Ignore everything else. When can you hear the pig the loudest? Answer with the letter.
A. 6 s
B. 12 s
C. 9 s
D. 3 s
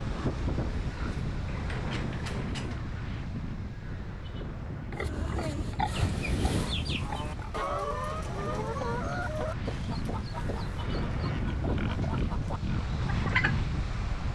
A.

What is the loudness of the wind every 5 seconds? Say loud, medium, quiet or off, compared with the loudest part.
loud, medium, loud.